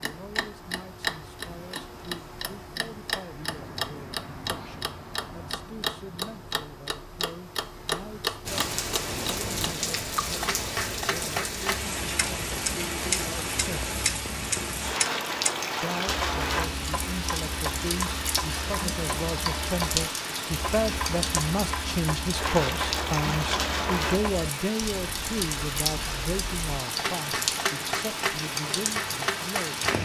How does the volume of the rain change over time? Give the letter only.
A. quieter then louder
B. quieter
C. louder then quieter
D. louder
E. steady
E.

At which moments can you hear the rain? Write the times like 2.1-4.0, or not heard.
8.4-29.9.